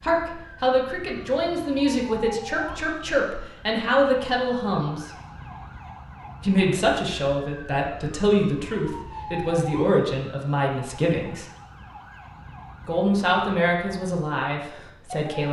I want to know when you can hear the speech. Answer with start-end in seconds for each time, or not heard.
0.0-5.1, 6.4-11.4, 12.8-15.4.